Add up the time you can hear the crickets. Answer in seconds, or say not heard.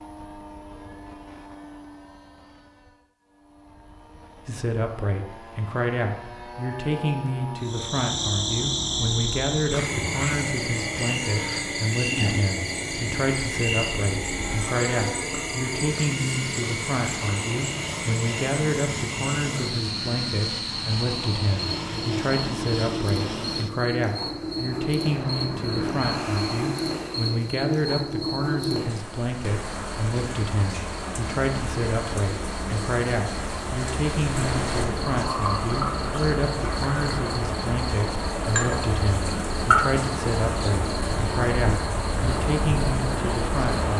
36 s.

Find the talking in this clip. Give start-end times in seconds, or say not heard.
4.5-43.9.